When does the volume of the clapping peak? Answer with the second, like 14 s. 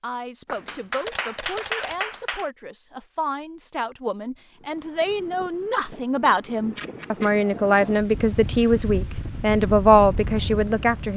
2 s.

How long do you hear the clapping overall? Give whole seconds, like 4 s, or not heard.
2 s.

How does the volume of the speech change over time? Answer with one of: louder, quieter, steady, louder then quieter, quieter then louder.
louder.